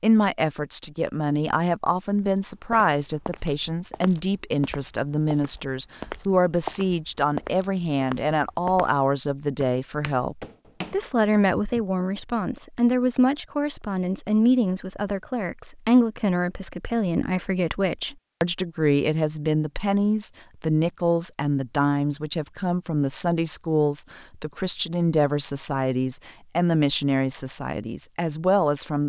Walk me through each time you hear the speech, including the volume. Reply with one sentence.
You can hear the speech from 0.0 to 29.0 s, at a steady volume.